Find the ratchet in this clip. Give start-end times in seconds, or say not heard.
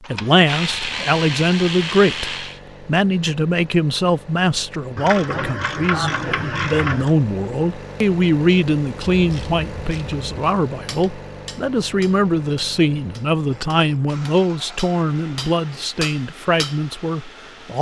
0.1-2.6, 5.0-7.2, 9.1-10.6, 13.5-15.9.